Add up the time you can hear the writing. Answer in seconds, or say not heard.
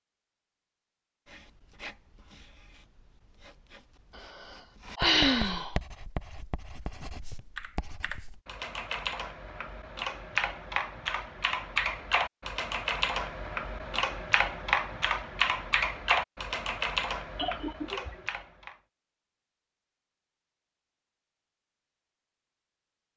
7 s.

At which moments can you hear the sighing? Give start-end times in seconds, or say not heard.
4.2-5.8, 17.4-18.2.